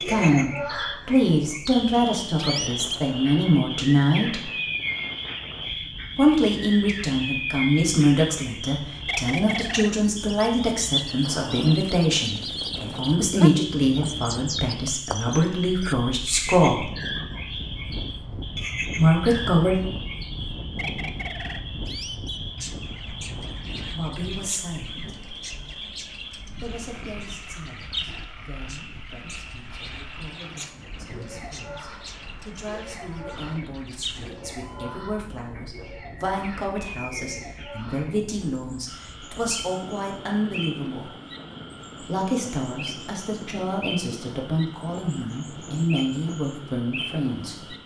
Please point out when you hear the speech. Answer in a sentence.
The speech can be heard from 0.0 to 4.5 s, from 6.2 to 16.9 s, from 18.9 to 19.8 s, from 23.8 to 25.1 s, from 26.5 to 41.1 s and from 42.0 to 47.7 s.